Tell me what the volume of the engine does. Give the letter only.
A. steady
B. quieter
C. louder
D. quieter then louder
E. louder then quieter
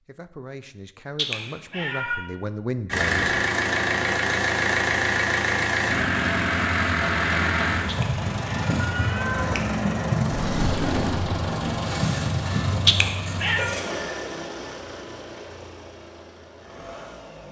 B.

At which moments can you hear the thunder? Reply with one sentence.
You can hear the thunder from 10.3 to 11.8 s.